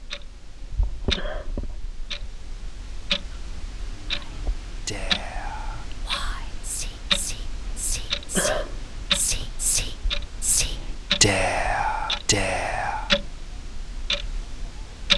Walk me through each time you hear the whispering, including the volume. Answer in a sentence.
You can hear the whispering from 4.0 to 13.2 s, getting louder.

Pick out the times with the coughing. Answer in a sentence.
You can hear the coughing from 1.1 to 1.6 s and from 8.3 to 8.8 s.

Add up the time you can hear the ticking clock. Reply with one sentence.
You can hear the ticking clock for 15 seconds altogether.